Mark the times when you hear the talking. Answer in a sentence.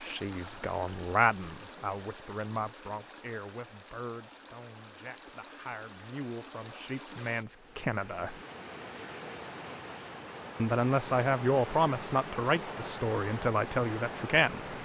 You can hear the talking from 0.0 to 8.3 s and from 10.6 to 14.6 s.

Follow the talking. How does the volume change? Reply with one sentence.
The volume of the talking goes down, then up.